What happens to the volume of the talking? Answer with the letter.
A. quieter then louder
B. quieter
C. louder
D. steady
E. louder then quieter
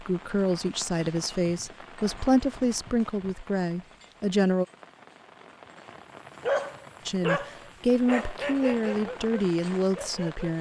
D.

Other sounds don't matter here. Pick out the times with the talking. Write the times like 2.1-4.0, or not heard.
0.0-4.7, 7.0-10.5.